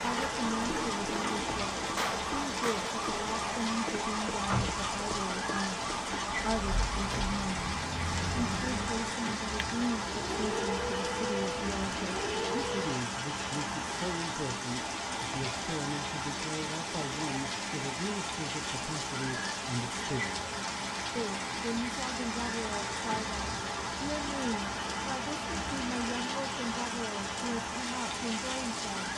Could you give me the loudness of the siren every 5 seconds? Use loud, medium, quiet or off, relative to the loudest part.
loud, loud, loud, off, off, off.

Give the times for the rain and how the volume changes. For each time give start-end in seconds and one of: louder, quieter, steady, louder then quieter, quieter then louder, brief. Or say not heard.
0.0-29.1 steady.